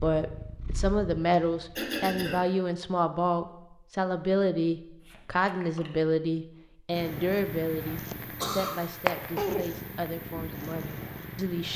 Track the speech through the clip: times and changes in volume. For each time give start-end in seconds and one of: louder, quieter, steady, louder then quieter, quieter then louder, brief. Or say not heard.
0.0-11.7 quieter.